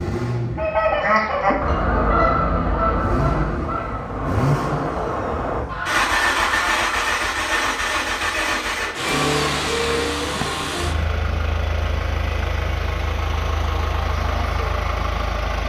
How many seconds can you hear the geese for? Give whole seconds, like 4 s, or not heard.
6 s.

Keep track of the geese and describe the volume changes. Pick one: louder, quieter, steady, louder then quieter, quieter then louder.
quieter.